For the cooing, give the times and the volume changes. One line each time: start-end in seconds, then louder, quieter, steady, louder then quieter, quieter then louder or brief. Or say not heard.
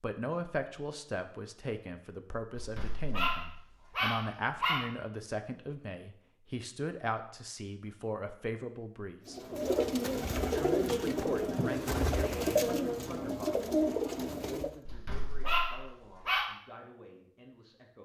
9.2-14.8 steady.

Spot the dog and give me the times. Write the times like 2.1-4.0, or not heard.
2.5-4.8, 14.8-16.4.